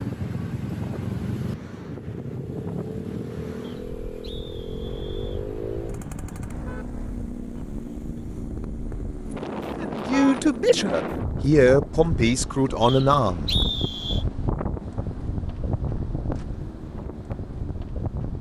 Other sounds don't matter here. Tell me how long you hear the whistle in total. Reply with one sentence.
The whistle can be heard for 3 seconds in total.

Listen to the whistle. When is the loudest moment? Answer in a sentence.
The loudest moment of the whistle is at 14 seconds.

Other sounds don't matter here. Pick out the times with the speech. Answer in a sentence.
The speech can be heard from 9.8 to 13.6 s.